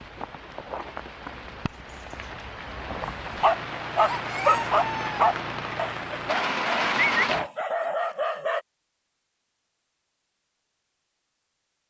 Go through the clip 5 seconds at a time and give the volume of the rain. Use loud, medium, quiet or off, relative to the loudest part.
medium, loud, off.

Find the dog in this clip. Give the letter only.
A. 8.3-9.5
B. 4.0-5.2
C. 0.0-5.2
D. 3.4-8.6
D.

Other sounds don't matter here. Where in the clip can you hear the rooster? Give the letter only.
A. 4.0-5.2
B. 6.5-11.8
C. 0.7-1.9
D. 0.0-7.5
A.